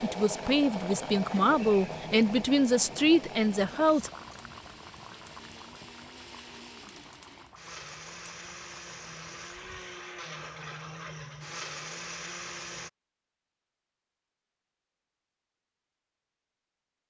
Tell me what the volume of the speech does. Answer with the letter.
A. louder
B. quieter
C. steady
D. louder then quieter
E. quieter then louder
C.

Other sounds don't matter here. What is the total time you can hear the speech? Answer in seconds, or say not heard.
4 s.